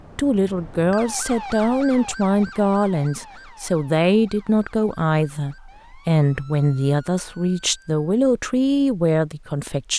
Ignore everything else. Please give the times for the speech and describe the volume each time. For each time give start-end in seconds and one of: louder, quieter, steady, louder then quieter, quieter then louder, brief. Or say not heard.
0.1-9.9 steady.